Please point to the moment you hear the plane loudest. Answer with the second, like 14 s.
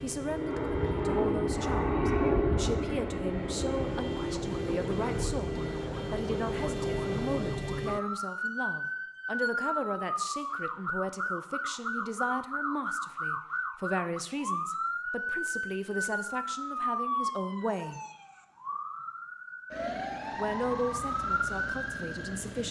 2 s.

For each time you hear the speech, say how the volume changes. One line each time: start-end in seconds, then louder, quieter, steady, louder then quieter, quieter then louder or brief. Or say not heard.
0.0-18.0 steady
20.4-22.6 brief.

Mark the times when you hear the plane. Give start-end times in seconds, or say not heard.
0.0-7.5.